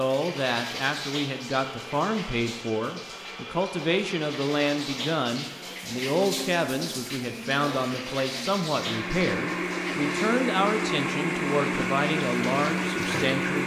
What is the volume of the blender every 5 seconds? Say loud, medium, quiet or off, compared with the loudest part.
quiet, medium, loud.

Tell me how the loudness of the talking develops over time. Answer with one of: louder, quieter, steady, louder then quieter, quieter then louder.
steady.